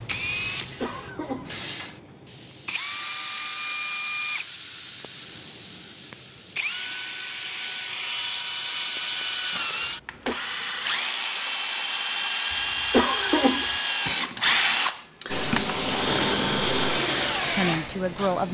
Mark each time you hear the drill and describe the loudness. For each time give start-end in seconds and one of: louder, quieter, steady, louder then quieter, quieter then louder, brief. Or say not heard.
0.0-18.4 louder.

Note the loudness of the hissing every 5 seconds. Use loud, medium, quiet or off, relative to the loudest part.
medium, medium, off, loud.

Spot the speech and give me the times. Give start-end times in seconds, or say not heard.
17.5-18.4.